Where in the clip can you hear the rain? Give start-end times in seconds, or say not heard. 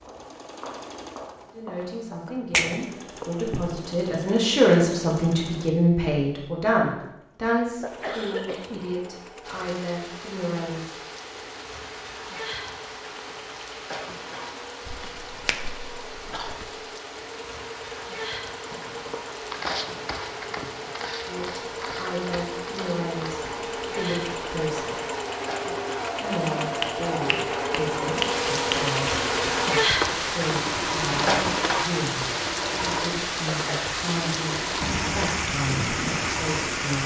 9.4-37.0.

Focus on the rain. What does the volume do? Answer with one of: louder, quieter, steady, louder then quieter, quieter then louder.
louder.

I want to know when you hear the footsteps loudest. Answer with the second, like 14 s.
20 s.